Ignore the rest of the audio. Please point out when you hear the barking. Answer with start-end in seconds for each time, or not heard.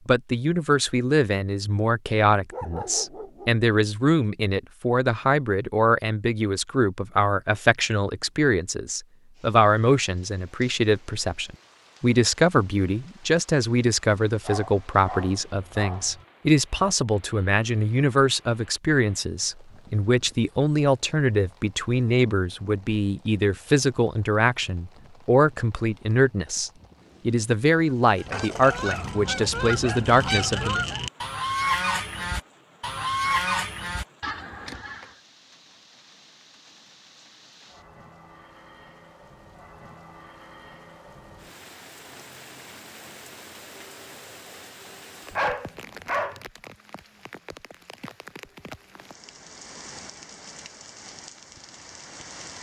2.5-3.5, 14.4-16.2, 28.6-30.9, 45.3-46.5.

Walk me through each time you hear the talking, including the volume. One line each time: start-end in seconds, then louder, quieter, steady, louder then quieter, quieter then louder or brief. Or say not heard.
0.1-30.8 steady.